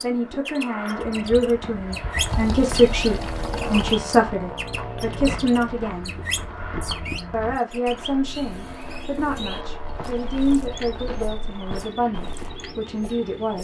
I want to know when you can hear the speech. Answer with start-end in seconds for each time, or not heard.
0.0-6.2, 7.3-13.6.